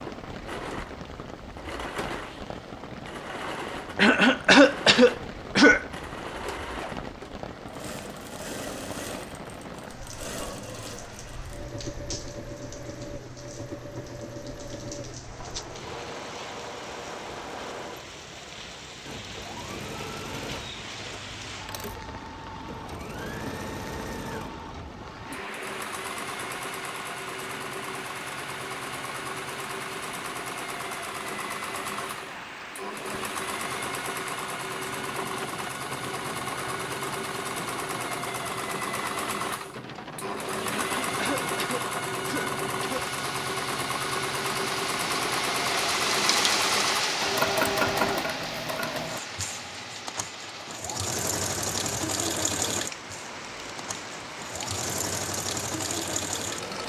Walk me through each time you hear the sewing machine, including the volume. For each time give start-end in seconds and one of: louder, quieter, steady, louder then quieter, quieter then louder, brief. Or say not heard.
0.0-56.8 louder.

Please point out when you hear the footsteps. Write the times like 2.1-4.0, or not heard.
not heard.